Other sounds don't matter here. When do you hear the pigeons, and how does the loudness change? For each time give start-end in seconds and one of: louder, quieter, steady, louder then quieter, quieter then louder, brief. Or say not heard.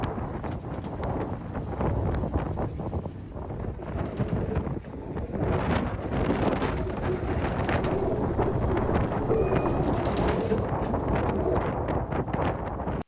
3.8-11.6 louder.